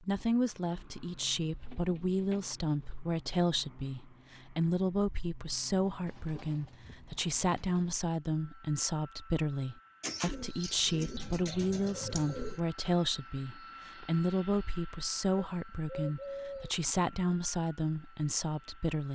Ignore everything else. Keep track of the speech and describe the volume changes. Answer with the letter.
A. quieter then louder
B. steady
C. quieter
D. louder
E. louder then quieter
B.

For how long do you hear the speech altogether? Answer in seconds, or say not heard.
19 s.